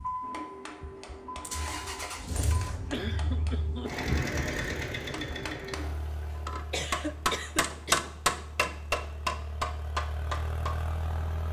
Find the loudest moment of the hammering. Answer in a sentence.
The loudest moment of the hammering is at 8 seconds.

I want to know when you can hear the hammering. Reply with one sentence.
You can hear the hammering from 0.2 to 10.8 s.